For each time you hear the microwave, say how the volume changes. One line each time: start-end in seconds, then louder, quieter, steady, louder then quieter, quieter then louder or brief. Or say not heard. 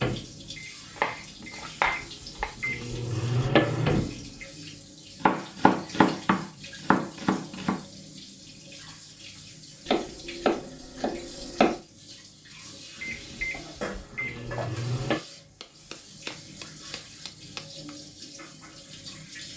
0.0-4.5 louder
13.0-15.2 brief.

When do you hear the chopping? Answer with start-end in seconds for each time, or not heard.
0.9-2.5, 5.2-7.8, 9.8-11.8, 15.6-17.9.